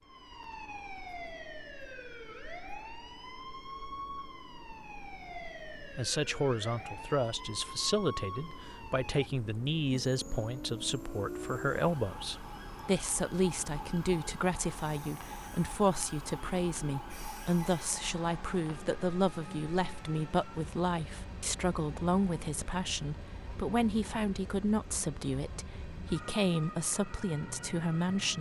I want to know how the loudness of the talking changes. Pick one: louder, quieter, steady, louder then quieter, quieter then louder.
steady.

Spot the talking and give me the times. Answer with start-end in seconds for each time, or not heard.
5.8-28.3.